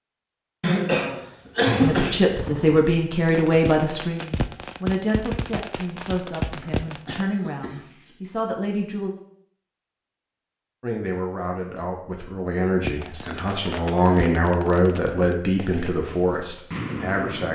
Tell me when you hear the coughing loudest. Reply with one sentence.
The loudest moment of the coughing is at 2 seconds.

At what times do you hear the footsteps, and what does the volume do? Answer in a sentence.
The footsteps can't be heard in this clip.